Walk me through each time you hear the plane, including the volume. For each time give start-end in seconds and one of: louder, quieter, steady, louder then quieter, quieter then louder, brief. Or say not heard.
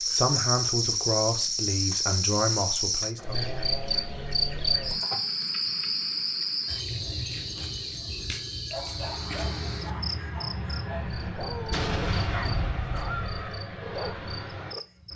8.8-15.1 steady.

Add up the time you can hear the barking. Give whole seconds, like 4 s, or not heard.
6 s.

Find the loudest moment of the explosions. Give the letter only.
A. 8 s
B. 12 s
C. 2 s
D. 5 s
B.